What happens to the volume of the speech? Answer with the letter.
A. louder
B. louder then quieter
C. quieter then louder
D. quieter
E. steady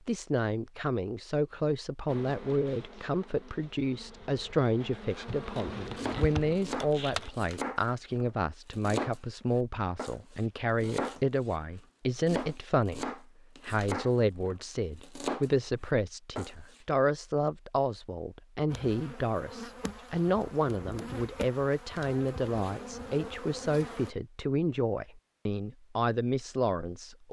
E.